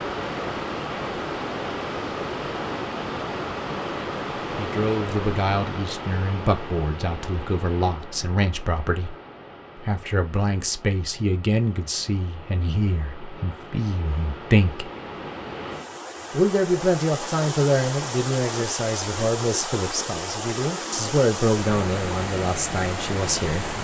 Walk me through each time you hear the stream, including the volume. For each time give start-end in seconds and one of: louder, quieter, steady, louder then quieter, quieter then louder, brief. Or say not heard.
0.0-23.7 quieter then louder.